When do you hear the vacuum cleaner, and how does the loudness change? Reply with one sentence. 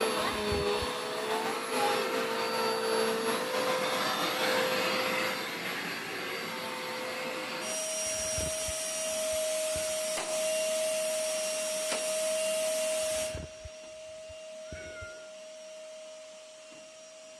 The vacuum cleaner can be heard from 0.0 to 17.3 s, getting quieter.